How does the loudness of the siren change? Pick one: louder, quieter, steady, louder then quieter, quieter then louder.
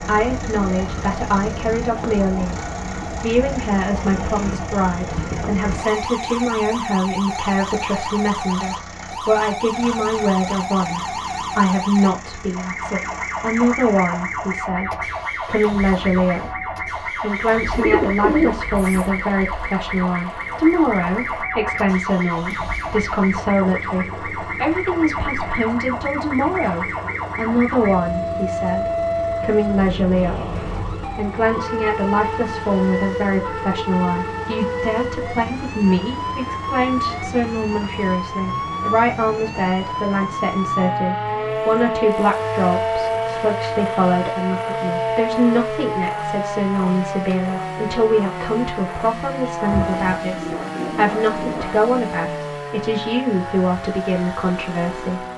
steady.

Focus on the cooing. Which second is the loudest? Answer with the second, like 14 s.
18 s.